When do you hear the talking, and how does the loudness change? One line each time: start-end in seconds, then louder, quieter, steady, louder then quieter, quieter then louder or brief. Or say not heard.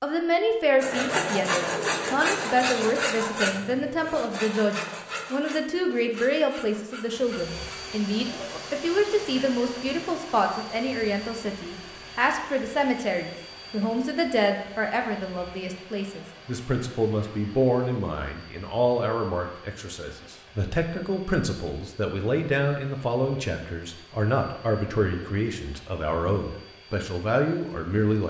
0.0-28.2 steady.